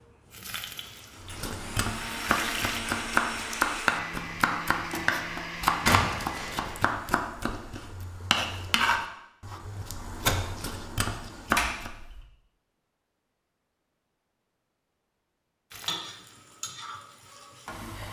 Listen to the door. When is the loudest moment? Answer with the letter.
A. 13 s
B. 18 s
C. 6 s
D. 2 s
C.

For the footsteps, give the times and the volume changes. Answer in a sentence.
You can't hear the footsteps here.